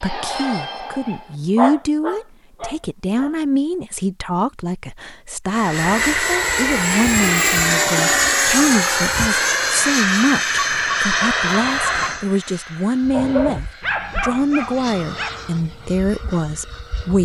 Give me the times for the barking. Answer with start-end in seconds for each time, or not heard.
0.0-3.5, 13.1-15.3.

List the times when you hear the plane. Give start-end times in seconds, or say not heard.
5.5-17.2.